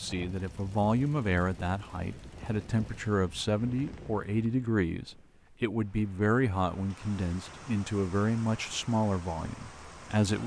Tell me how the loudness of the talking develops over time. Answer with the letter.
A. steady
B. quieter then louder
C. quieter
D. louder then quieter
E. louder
A.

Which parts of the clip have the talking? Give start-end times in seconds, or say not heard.
0.0-10.4.